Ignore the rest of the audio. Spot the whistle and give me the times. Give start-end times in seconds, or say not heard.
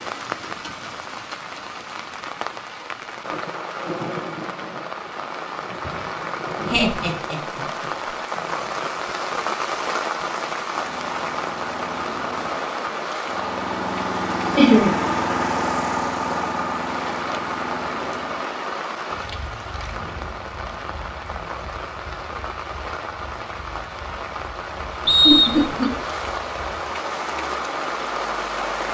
25.1-25.9.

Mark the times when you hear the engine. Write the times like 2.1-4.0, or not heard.
10.7-28.8.